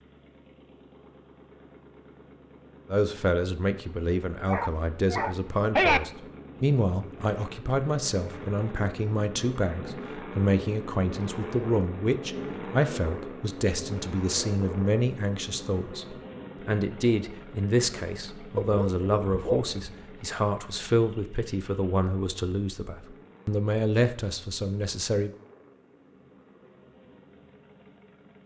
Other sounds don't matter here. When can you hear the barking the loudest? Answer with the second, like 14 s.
6 s.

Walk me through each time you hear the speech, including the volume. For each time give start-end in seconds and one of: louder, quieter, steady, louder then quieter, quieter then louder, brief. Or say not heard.
2.9-25.3 steady.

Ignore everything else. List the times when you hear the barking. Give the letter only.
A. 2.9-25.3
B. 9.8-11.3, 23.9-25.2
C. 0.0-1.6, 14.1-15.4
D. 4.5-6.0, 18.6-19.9
D.